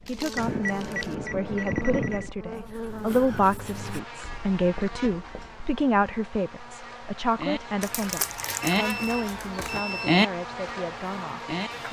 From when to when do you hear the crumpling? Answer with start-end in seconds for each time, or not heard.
0.1-1.1, 7.8-9.8.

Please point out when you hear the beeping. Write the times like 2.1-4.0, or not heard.
0.3-2.3, 8.6-10.3.